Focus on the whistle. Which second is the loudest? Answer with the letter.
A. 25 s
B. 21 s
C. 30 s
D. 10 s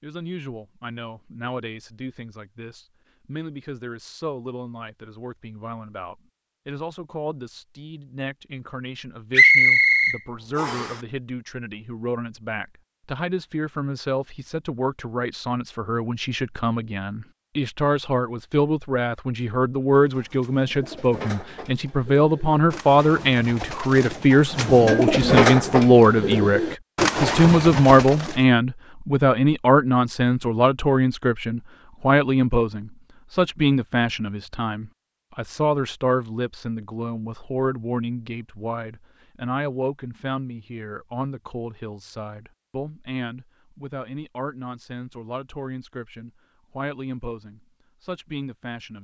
D.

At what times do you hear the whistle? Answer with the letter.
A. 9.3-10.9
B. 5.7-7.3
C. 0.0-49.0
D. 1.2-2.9
A.